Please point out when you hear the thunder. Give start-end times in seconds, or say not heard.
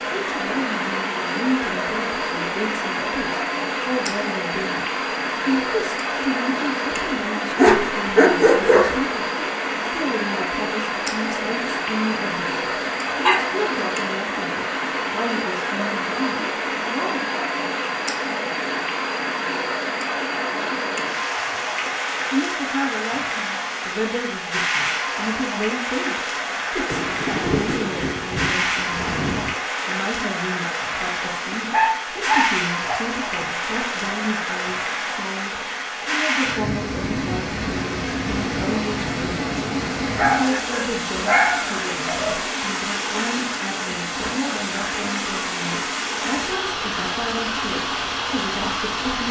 26.9-29.6.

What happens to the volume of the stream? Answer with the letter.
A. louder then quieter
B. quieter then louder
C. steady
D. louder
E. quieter
C.